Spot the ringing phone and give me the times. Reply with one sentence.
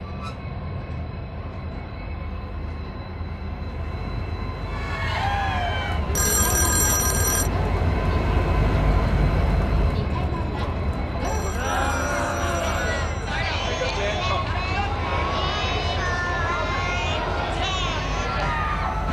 The ringing phone can be heard from 6.1 to 7.5 s and from 11.2 to 13.3 s.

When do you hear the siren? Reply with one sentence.
The siren can't be heard in this clip.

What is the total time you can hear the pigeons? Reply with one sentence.
You can't hear the pigeons here.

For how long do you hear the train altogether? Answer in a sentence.
The train can be heard for 19 seconds in total.